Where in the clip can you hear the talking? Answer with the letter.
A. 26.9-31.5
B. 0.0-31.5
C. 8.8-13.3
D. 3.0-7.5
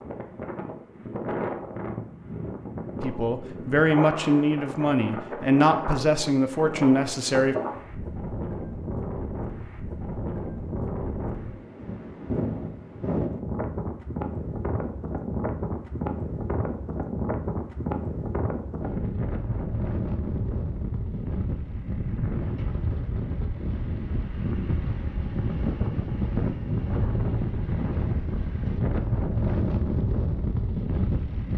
D.